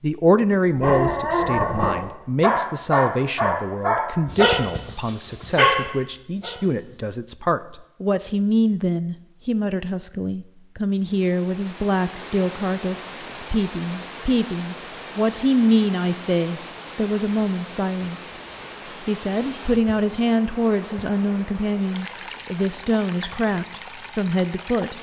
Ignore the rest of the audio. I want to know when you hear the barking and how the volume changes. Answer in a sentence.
The barking can be heard from 0.8 to 7.0 s, at a steady volume.